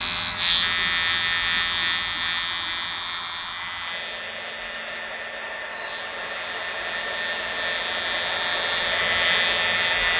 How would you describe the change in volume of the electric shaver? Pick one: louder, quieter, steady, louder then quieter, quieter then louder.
quieter then louder.